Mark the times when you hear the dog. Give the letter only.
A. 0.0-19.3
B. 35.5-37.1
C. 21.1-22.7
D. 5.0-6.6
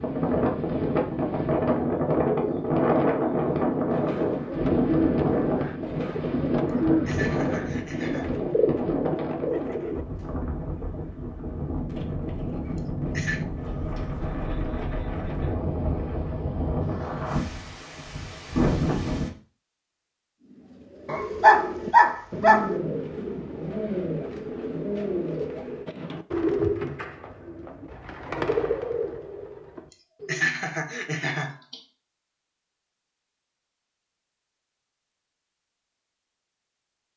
C.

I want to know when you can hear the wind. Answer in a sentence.
The wind can be heard from 0.0 to 19.3 s.